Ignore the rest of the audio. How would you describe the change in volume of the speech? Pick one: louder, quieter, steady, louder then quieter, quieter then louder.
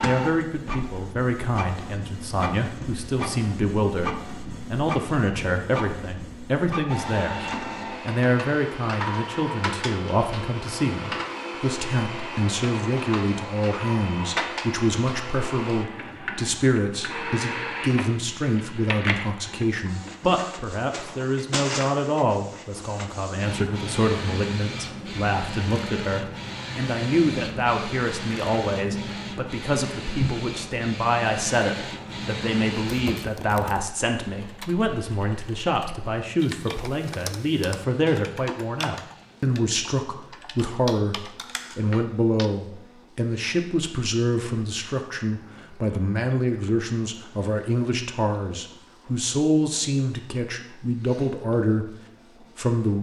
steady.